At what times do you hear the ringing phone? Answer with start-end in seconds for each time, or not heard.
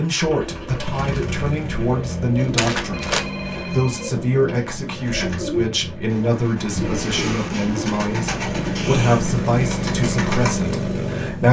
2.5-4.5.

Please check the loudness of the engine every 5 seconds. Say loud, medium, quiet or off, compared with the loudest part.
medium, loud, loud.